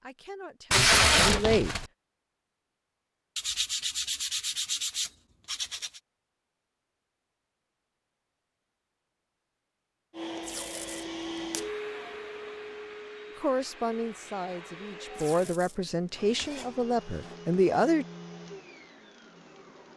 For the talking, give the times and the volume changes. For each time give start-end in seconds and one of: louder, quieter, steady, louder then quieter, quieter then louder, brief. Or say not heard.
0.0-1.7 brief
13.4-18.1 louder.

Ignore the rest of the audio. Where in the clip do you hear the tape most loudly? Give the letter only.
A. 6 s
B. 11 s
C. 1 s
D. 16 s
C.